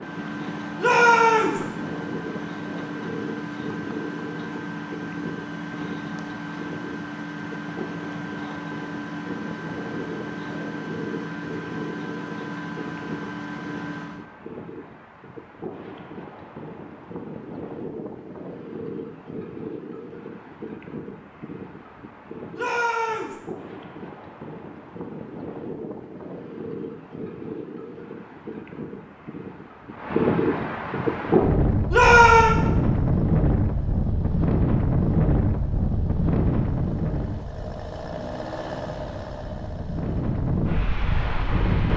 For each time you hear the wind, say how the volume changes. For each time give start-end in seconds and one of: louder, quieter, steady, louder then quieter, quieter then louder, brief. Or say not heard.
0.0-41.9 louder.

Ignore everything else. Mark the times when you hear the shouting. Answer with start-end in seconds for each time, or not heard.
0.8-1.6, 22.6-23.4, 31.9-32.5.